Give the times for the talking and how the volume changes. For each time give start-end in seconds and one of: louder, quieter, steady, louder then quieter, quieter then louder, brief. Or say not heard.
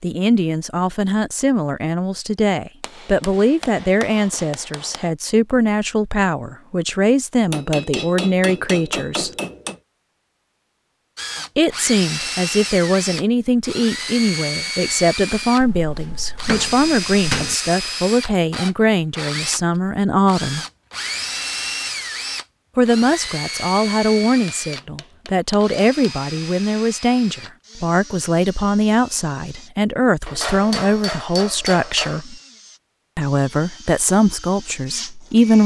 0.0-9.3 steady
11.6-20.6 steady
22.8-32.4 steady
33.1-35.6 brief.